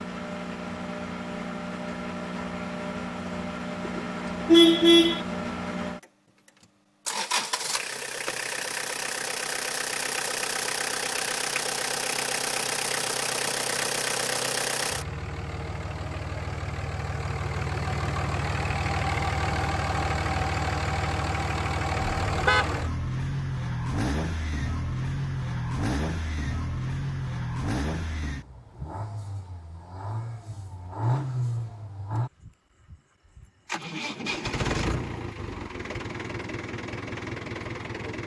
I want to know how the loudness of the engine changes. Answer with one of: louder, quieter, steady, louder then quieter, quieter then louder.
steady.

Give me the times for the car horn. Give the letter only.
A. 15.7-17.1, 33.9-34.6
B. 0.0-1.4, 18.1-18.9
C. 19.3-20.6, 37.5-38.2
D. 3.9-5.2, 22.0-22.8
D.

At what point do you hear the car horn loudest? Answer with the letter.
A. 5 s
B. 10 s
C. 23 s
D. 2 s
A.